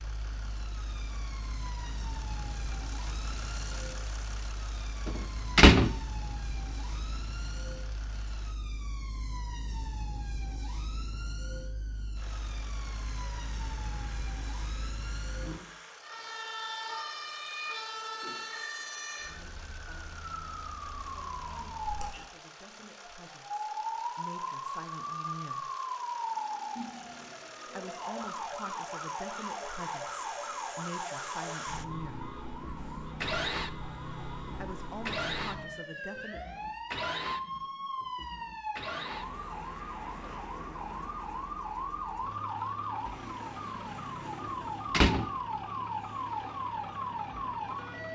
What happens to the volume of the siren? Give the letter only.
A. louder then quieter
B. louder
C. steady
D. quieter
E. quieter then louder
B.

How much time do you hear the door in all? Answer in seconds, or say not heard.
2 s.